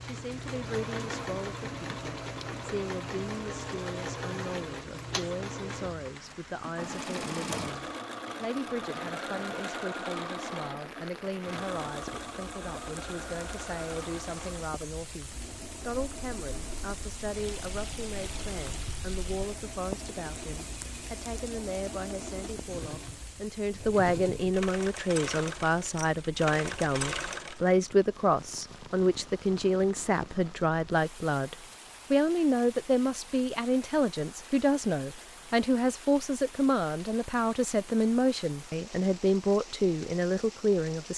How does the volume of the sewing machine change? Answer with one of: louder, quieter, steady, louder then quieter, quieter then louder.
quieter then louder.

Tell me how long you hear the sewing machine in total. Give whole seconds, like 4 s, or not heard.
28 s.